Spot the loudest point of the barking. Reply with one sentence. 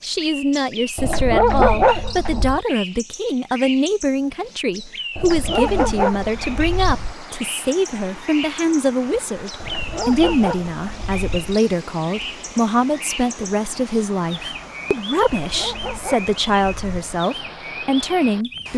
The loudest moment of the barking is at 2 seconds.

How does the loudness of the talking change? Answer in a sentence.
The loudness of the talking stays about the same.